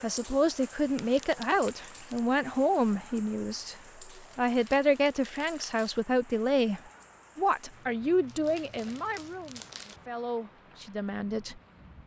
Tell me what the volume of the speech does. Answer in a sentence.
The loudness of the speech goes down.